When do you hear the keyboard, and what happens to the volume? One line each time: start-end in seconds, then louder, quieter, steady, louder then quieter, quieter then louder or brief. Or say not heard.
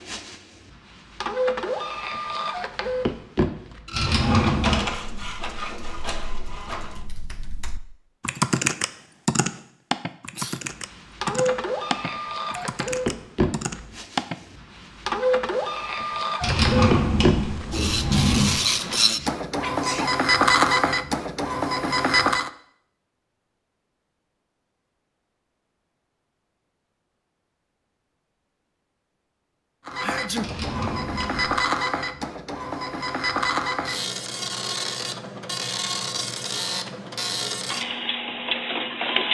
4.9-14.4 louder then quieter.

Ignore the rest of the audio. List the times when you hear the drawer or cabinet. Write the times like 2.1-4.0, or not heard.
3.9-4.8, 16.4-18.6, 30.4-31.6.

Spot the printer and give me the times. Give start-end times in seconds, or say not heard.
0.0-7.1, 10.7-22.5, 29.9-39.2.